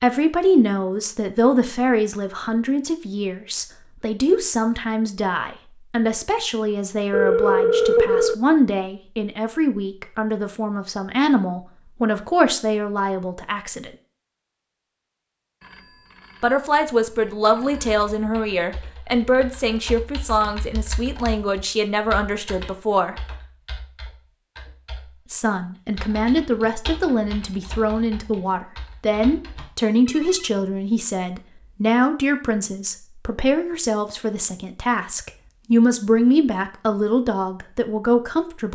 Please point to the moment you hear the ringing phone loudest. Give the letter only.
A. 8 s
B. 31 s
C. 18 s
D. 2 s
A.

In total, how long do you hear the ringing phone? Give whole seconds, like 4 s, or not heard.
4 s.